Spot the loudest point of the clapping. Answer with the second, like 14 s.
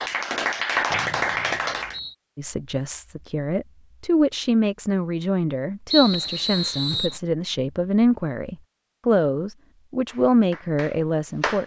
1 s.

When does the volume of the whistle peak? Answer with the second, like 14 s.
6 s.